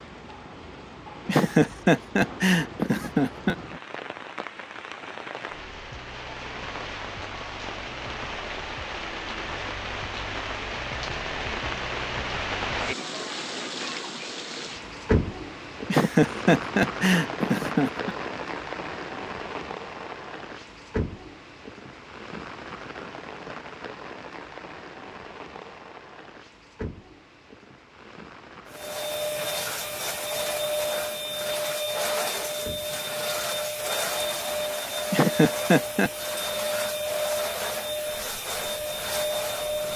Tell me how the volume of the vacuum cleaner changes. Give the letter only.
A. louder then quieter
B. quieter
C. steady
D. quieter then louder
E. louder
C.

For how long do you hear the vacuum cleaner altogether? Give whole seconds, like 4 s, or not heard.
11 s.